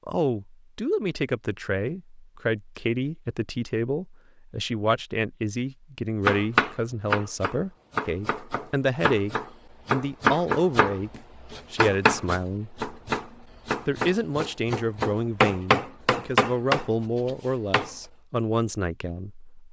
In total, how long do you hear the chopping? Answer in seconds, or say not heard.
12 s.